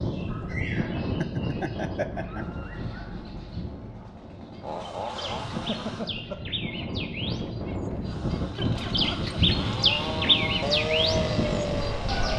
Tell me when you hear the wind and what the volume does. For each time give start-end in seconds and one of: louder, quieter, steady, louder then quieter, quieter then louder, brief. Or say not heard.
0.0-12.3 quieter then louder.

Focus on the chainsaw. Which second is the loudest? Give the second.
11 s.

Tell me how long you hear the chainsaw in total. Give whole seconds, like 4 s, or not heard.
8 s.